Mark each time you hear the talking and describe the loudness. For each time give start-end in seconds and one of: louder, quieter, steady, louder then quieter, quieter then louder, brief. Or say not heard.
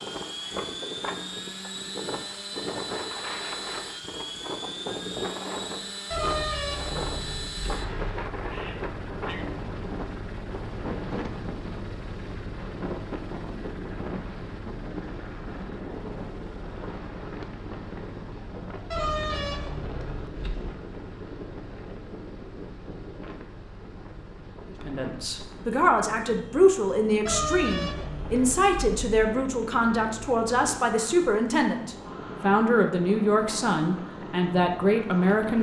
24.7-35.5 steady.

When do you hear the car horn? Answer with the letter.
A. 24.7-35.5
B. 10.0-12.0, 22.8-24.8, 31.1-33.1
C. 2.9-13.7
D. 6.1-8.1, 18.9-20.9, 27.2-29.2
D.